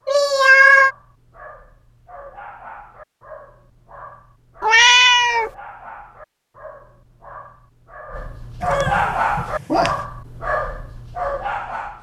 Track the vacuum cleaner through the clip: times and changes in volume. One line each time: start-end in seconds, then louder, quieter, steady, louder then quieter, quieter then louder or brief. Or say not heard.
not heard.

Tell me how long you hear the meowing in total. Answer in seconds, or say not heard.
3 s.